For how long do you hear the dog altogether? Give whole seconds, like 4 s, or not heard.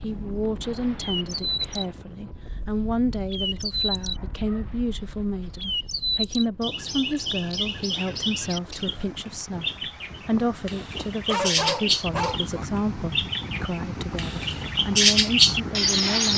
4 s.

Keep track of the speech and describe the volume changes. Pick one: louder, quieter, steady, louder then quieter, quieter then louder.
steady.